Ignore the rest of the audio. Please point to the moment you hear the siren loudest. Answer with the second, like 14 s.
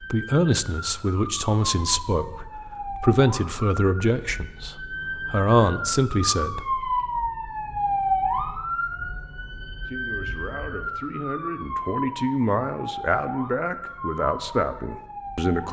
8 s.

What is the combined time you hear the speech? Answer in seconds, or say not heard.
13 s.